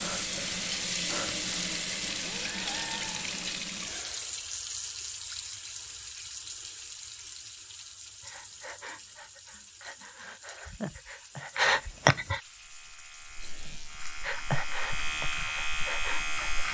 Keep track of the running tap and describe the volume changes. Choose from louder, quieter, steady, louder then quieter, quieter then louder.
quieter.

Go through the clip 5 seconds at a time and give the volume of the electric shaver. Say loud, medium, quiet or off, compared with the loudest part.
off, off, medium, loud.